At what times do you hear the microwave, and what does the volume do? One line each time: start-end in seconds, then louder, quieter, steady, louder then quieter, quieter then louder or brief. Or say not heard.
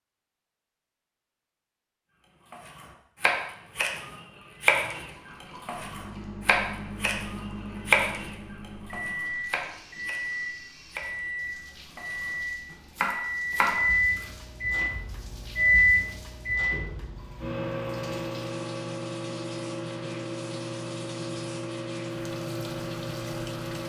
5.8-23.8 louder then quieter.